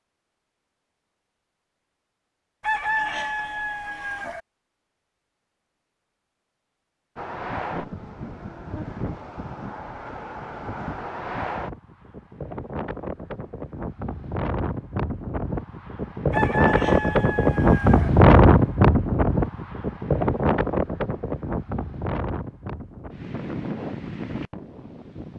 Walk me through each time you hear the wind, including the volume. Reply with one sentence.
The wind can be heard from 7.2 to 25.3 s, getting louder then quieter.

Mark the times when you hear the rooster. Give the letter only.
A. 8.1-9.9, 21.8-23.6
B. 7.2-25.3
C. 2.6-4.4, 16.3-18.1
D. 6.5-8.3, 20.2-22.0
C.